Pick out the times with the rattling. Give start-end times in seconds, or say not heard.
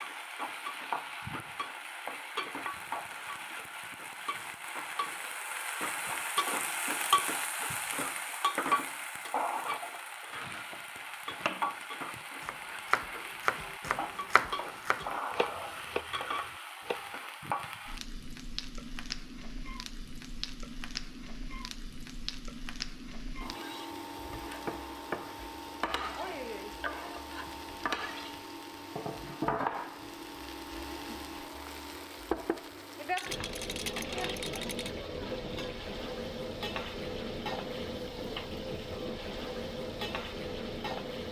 33.1-35.0.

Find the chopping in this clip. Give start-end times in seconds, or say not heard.
10.3-17.1.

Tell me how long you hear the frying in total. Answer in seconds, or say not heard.
41 s.